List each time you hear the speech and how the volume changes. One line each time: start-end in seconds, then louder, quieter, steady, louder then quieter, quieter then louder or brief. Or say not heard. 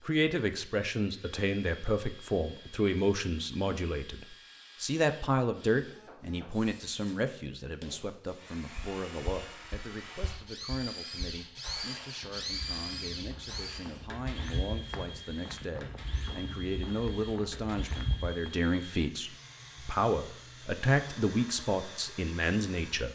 0.1-23.1 quieter then louder.